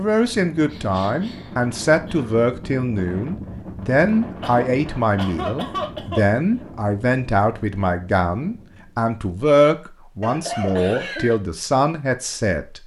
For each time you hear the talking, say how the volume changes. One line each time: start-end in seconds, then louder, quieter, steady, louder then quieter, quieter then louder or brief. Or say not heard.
0.0-12.8 steady.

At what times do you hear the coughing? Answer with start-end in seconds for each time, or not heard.
0.7-2.5, 4.4-6.7, 10.2-11.3.